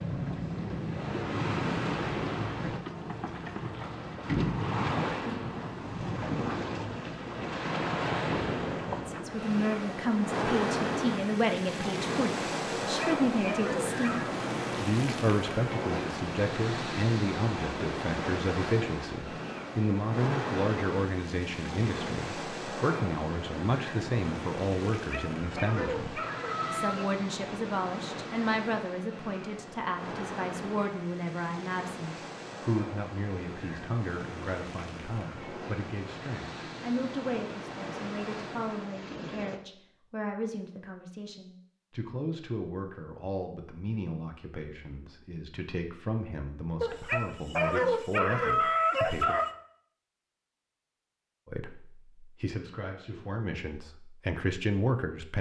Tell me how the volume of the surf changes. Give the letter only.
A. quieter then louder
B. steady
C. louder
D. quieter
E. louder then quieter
D.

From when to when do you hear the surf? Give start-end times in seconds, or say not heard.
0.0-39.6.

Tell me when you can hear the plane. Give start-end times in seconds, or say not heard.
not heard.